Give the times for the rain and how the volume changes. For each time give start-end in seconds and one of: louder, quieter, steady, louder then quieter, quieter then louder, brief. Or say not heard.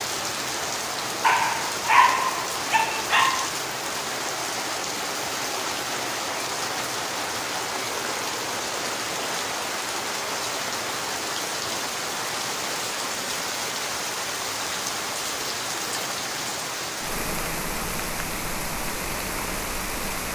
0.0-20.2 steady.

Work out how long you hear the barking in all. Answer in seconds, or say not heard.
2 s.